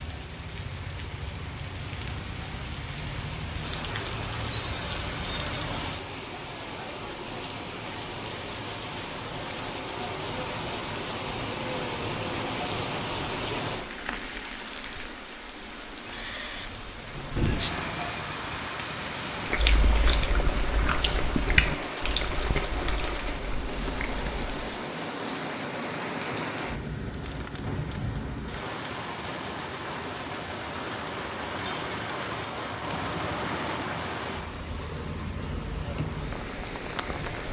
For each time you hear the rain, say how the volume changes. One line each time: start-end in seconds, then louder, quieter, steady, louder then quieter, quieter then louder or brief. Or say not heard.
0.0-37.4 steady.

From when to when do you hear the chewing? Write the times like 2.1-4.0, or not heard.
19.4-24.6.